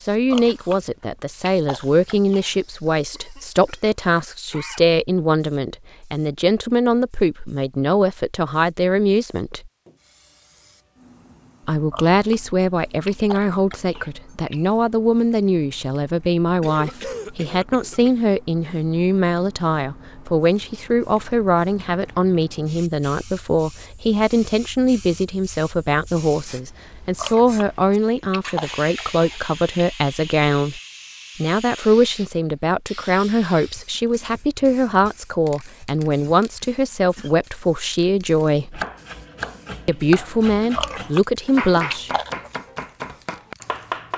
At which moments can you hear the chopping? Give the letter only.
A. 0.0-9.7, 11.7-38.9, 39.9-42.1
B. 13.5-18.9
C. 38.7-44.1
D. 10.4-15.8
C.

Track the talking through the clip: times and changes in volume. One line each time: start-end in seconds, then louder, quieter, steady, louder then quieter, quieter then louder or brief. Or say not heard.
0.0-9.7 steady
11.7-38.9 steady
39.9-42.1 brief.